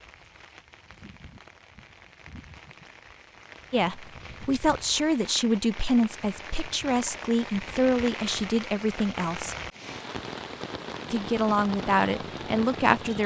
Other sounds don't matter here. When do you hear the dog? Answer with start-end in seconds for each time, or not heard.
not heard.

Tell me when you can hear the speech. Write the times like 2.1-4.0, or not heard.
3.7-9.6, 11.1-13.2.